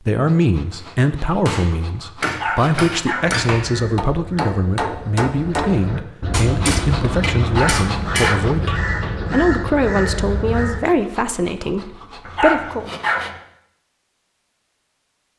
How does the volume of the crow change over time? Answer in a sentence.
The volume of the crow goes up.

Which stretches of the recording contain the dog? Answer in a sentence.
You can hear the dog from 2.2 to 3.4 s, from 7.4 to 8.5 s and from 12.2 to 13.3 s.